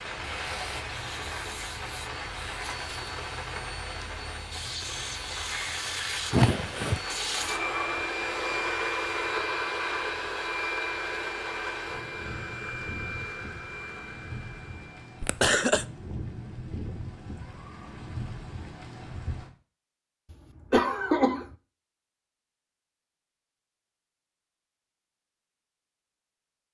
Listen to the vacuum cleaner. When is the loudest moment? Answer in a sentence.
The loudest moment of the vacuum cleaner is at 9 seconds.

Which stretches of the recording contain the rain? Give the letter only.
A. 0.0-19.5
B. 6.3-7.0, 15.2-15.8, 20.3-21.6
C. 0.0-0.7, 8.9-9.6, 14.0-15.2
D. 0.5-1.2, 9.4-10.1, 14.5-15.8
A.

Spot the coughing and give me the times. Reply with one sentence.
The coughing can be heard from 6.3 to 7.0 s, from 15.2 to 15.8 s and from 20.3 to 21.6 s.